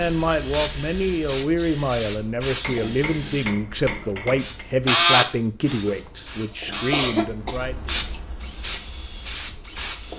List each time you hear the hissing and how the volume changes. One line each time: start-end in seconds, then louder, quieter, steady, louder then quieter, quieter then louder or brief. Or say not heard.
0.0-10.1 quieter then louder.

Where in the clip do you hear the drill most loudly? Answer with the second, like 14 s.
5 s.